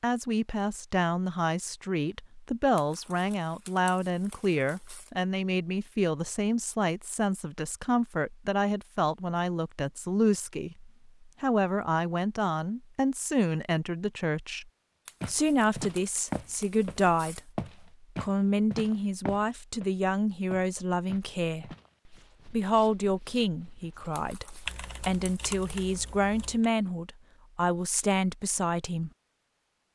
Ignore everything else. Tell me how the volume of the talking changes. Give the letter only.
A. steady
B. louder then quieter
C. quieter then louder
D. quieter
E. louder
A.